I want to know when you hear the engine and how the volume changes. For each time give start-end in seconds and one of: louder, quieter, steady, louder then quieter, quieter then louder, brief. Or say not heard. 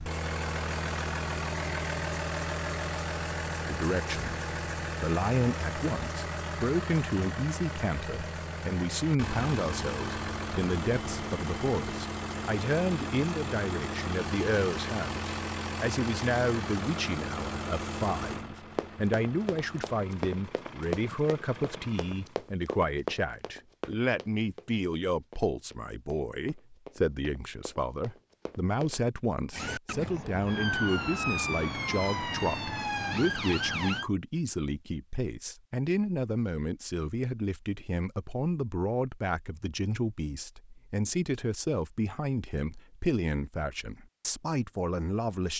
0.0-22.5 quieter.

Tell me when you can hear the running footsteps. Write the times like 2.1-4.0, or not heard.
18.8-29.0.